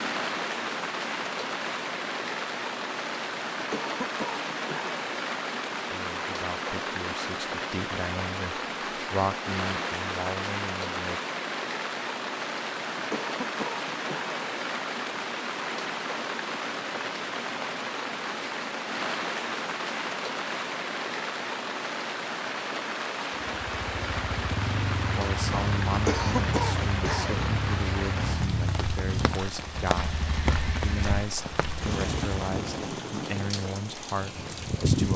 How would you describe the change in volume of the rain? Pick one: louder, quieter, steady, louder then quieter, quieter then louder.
steady.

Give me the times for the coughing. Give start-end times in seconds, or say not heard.
3.5-5.0, 12.9-14.3, 25.9-27.4.